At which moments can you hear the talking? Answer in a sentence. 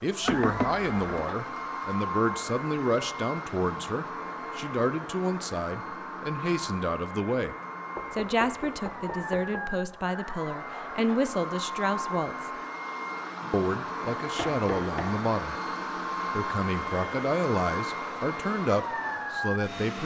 The talking can be heard from 0.0 to 12.5 s, from 13.5 to 15.6 s and from 16.3 to 20.0 s.